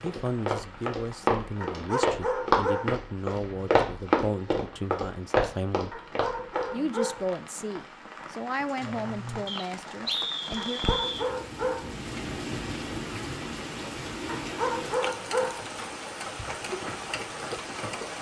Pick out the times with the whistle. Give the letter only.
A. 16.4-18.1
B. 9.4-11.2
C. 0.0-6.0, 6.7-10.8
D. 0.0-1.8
B.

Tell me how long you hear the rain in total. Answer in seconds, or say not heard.
18 s.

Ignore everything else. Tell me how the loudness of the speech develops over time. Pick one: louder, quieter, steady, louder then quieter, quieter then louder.
steady.